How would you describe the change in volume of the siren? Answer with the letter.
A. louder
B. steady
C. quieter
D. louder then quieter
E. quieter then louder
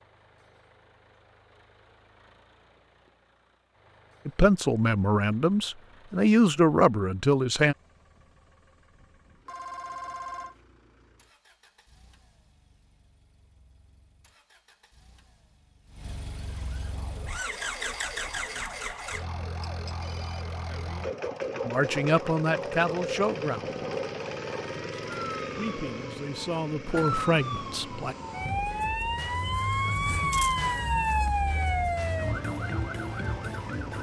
A.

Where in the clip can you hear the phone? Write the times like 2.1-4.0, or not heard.
9.4-10.6, 19.6-20.4.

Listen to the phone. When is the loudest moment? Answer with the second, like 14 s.
10 s.